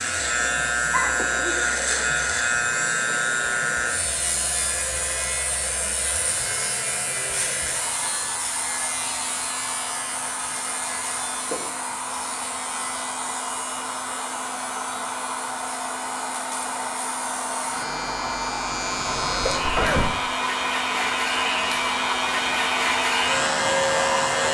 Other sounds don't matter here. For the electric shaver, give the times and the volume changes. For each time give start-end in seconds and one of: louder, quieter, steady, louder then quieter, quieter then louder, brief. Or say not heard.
0.0-24.4 quieter then louder.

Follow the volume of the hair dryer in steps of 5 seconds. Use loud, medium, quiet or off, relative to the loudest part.
medium, medium, medium, loud, loud.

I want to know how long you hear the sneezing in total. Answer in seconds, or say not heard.
2 s.